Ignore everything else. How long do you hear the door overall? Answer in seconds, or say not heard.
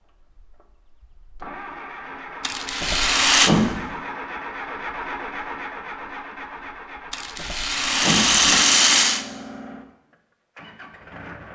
2 s.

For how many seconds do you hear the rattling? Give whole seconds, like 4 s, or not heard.
3 s.